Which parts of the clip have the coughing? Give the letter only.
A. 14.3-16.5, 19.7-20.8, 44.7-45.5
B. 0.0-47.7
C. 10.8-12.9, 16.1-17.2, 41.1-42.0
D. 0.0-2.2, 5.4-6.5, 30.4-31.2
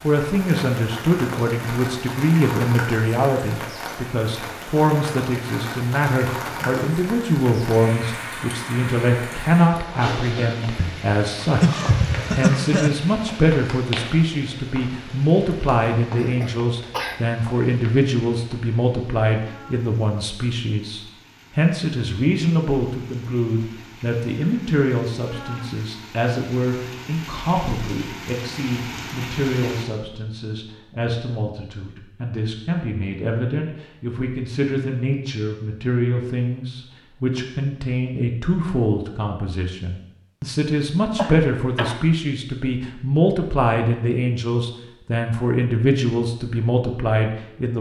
C.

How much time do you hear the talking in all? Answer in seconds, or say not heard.
48 s.